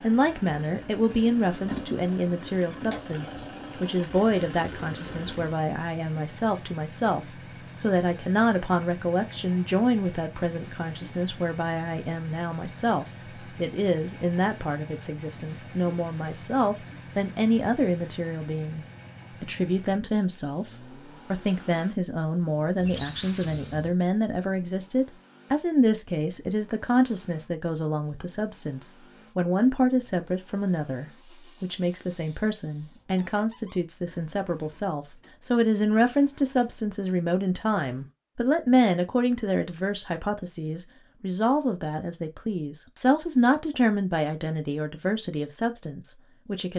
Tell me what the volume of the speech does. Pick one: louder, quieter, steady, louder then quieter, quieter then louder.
steady.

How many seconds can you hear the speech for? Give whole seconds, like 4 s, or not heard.
46 s.